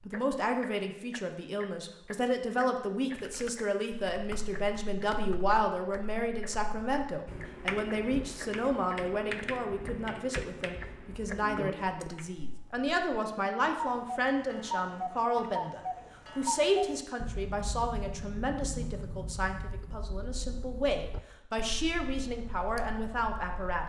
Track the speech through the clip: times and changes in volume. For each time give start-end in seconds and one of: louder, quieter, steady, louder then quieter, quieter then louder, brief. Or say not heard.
0.1-23.8 steady.